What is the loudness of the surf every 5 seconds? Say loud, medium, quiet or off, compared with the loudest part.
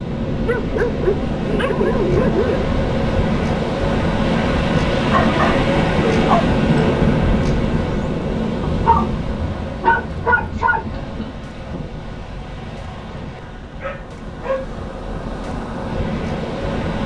loud, loud, quiet, medium.